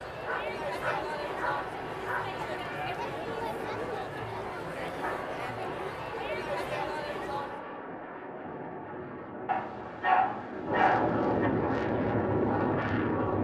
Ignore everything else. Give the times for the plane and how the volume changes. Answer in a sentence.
The plane can be heard from 0.0 to 13.3 s, getting louder.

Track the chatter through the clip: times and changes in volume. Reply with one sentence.
The chatter can be heard from 0.0 to 7.7 s, at a steady volume.